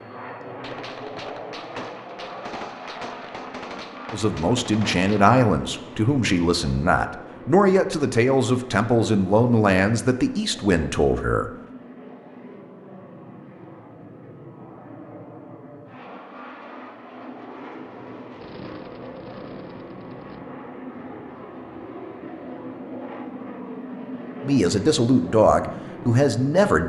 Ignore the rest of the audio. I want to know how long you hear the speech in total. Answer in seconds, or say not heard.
10 s.